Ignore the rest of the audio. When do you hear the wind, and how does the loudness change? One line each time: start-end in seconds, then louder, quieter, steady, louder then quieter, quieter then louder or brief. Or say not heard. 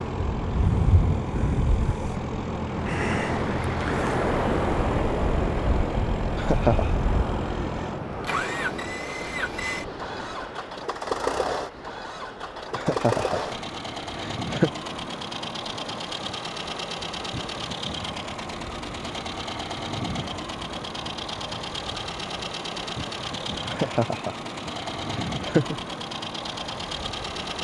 0.0-27.5 quieter.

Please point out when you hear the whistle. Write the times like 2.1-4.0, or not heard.
not heard.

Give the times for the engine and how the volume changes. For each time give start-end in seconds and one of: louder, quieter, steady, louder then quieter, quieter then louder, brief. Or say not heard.
0.0-27.5 steady.